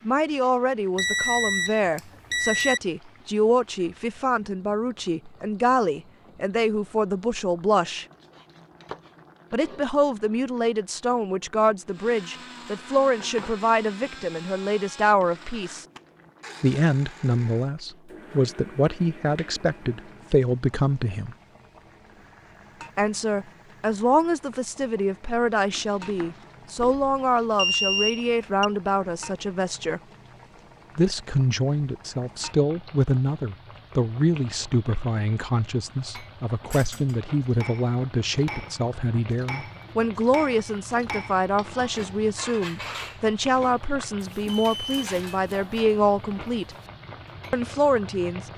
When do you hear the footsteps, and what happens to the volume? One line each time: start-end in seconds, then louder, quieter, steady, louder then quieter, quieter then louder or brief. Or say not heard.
not heard.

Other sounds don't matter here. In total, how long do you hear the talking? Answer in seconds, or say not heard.
43 s.